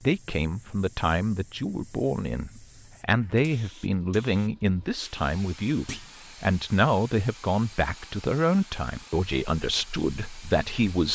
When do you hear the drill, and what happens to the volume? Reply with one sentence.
You can't hear the drill here.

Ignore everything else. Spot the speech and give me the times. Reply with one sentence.
You can hear the speech from 0.0 to 11.1 s.